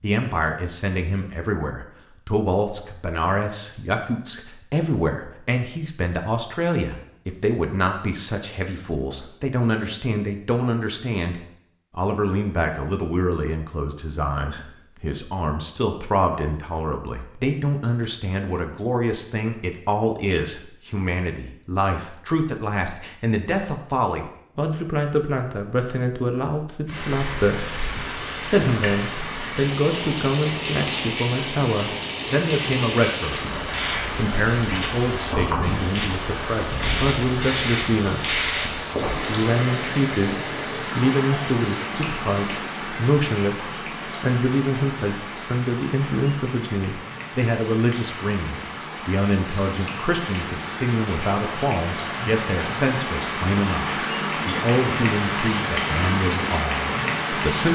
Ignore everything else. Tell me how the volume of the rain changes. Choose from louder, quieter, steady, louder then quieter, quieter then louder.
quieter then louder.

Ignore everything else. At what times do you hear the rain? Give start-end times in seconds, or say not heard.
26.9-57.6.